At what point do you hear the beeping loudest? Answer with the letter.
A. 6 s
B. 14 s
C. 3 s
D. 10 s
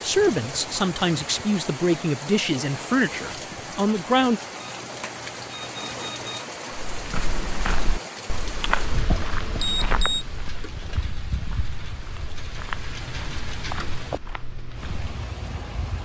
D.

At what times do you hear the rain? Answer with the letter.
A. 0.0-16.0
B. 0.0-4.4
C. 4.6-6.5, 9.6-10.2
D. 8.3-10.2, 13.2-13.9
A.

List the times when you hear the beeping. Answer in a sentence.
You can hear the beeping from 4.6 to 6.5 s and from 9.6 to 10.2 s.